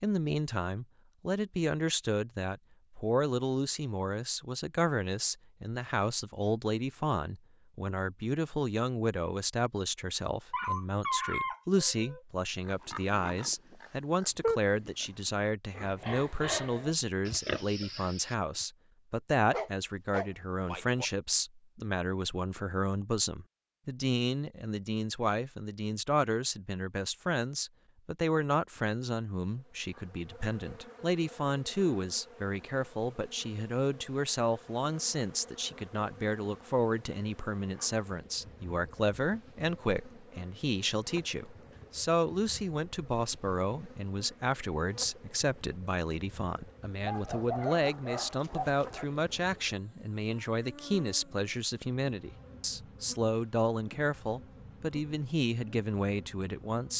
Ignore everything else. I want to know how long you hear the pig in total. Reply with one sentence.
You can hear the pig for 6 seconds altogether.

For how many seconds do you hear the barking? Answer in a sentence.
The barking can be heard for 5 seconds in total.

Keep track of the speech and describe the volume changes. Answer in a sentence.
The volume of the speech stays about the same.